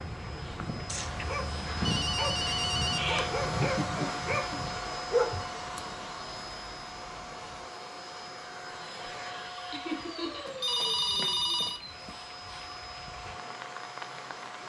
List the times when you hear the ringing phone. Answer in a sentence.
You can hear the ringing phone from 0.8 to 3.1 s and from 10.4 to 12.2 s.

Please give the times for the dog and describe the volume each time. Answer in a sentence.
The dog can be heard from 0.5 to 5.8 s, getting louder.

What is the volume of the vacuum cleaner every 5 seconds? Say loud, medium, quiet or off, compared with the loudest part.
loud, loud, medium.